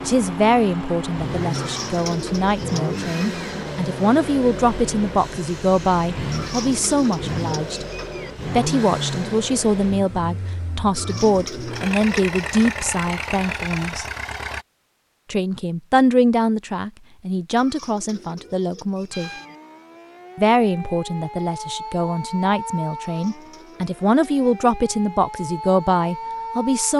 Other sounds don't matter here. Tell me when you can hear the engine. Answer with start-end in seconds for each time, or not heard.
0.0-14.7.